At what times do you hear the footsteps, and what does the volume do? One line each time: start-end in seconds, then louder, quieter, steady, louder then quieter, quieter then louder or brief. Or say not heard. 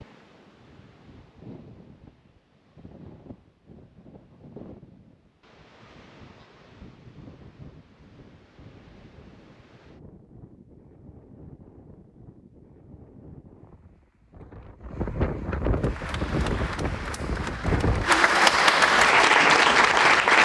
not heard.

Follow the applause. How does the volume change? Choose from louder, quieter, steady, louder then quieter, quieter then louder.
louder.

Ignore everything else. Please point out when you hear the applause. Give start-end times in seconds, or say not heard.
15.8-20.3.